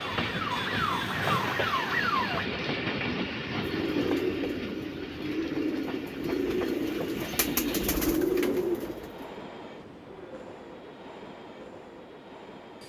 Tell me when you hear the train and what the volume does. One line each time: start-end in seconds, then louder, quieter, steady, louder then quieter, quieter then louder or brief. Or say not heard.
0.0-12.8 quieter.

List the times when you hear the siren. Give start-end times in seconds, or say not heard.
0.0-2.5.